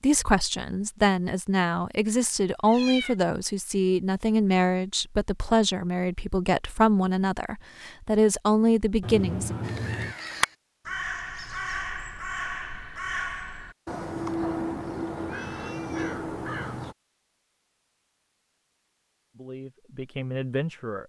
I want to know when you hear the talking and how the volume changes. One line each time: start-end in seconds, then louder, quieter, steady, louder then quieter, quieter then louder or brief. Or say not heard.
0.0-9.6 steady
19.4-21.0 brief.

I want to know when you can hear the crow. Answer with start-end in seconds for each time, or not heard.
9.6-16.9.